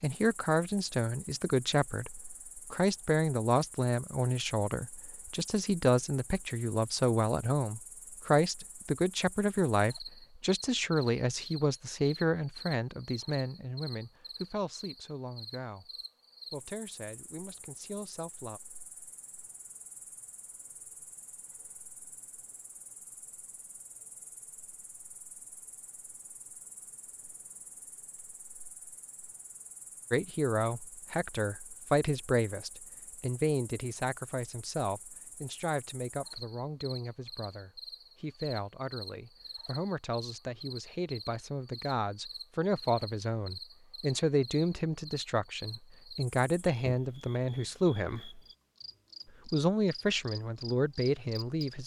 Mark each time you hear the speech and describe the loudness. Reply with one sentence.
The speech can be heard from 0.0 to 15.9 s, getting quieter; briefly from 16.5 to 18.6 s; from 30.1 to 48.3 s, getting quieter then louder; and briefly from 49.5 to 51.8 s.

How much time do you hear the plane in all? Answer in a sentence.
You can't hear the plane here.